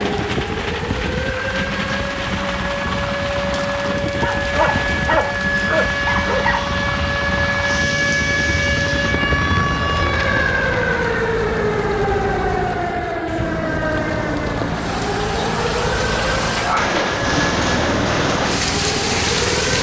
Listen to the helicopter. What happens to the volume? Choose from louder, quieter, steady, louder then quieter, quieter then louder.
steady.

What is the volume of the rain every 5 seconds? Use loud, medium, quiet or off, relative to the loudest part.
medium, medium, medium, loud.